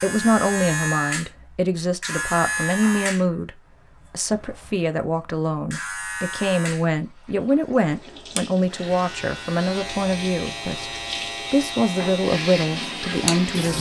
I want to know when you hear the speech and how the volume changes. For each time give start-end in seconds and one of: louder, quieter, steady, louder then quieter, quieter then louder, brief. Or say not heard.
0.0-13.7 steady.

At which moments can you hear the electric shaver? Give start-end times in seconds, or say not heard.
0.0-13.7.